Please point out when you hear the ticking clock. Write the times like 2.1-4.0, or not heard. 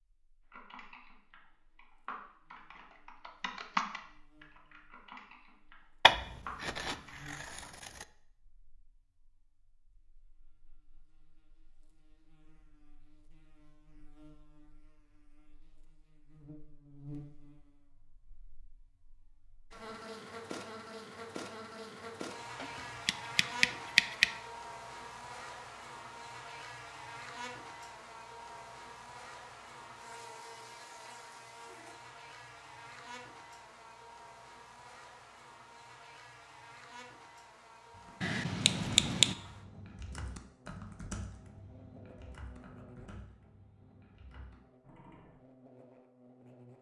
not heard.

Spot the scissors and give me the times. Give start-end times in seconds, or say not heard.
6.0-8.1, 22.6-24.4, 38.2-39.4.